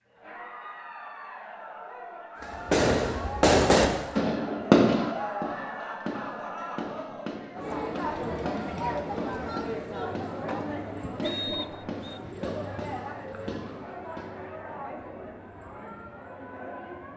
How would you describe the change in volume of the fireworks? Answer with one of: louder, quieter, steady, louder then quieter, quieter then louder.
quieter.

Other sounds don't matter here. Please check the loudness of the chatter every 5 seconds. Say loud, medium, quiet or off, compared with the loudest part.
medium, loud, loud, medium.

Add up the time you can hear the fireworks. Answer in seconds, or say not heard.
12 s.